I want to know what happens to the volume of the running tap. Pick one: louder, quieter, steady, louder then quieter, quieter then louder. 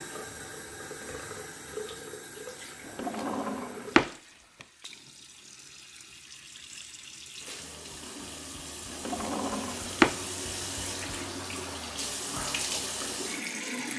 quieter then louder.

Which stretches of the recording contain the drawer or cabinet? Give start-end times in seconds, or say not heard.
2.9-4.7, 8.9-10.2.